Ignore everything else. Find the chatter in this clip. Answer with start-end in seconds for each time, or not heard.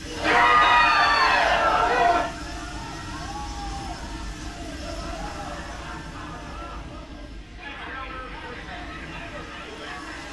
0.1-10.2.